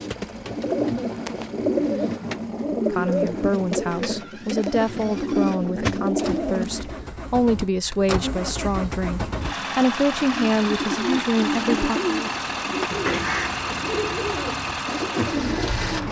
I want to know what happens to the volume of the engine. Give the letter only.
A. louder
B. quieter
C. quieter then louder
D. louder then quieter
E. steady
A.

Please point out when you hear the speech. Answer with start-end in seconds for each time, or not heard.
2.9-12.0.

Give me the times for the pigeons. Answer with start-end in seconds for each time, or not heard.
0.0-7.0, 10.5-16.0.